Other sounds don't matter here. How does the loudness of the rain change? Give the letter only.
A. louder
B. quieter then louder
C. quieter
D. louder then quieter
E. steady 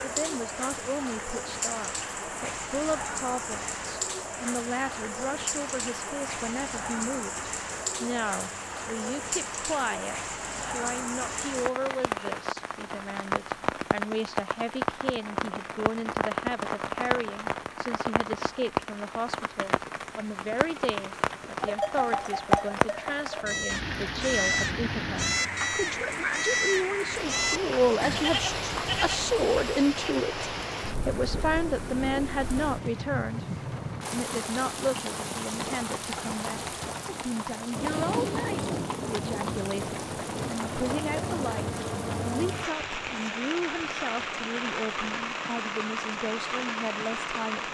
E.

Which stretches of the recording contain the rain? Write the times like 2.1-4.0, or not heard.
0.0-47.7.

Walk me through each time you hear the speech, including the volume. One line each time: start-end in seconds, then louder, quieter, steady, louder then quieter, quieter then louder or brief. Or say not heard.
0.0-33.5 louder
34.1-47.7 steady.